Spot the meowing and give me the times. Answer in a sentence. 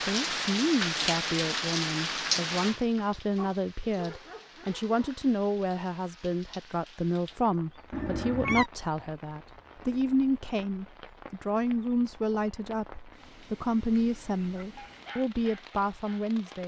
You can hear the meowing from 7.9 to 8.7 s.